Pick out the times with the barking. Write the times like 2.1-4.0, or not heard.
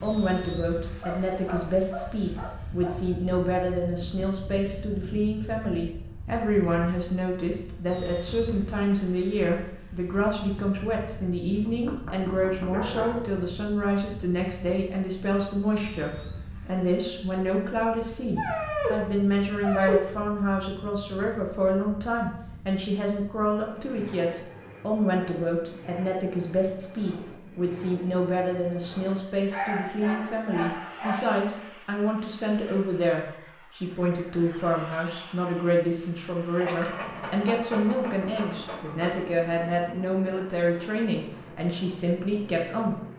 1.0-3.0, 11.6-13.2, 18.2-20.1, 29.5-31.2, 36.6-39.2.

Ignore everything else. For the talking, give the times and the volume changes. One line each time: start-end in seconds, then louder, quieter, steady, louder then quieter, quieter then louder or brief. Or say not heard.
0.0-43.0 steady.